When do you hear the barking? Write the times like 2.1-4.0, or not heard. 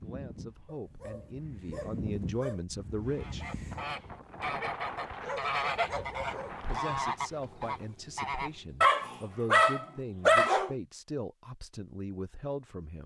0.7-2.6, 5.2-6.8, 8.8-10.8.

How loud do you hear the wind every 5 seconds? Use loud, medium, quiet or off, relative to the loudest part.
loud, loud, off.